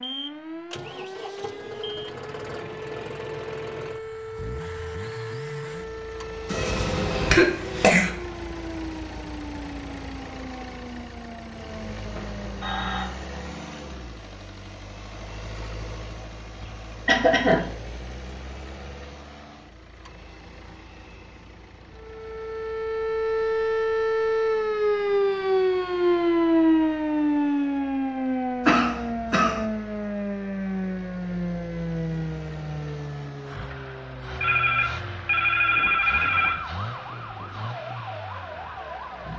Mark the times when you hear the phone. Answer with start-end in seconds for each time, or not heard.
12.2-13.1, 34.4-36.5.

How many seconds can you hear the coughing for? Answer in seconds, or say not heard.
4 s.